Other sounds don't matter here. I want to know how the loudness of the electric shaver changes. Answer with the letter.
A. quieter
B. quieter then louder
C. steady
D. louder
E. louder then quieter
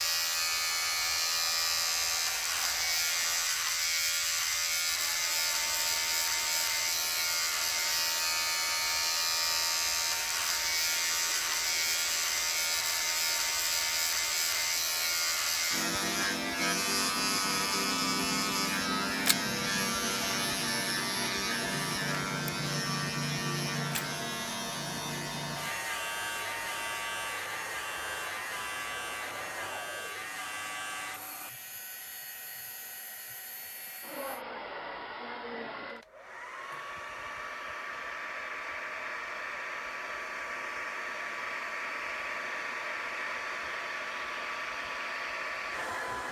A.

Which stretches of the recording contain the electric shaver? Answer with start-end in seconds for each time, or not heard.
0.0-34.5.